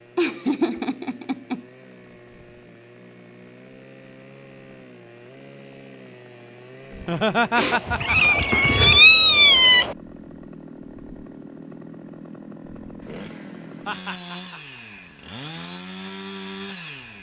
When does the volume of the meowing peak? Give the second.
9 s.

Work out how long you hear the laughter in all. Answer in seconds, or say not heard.
4 s.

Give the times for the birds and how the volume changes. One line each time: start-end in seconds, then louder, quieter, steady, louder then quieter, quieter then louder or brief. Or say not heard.
not heard.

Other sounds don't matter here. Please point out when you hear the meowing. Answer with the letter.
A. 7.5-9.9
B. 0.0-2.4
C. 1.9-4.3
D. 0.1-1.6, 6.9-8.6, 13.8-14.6
A.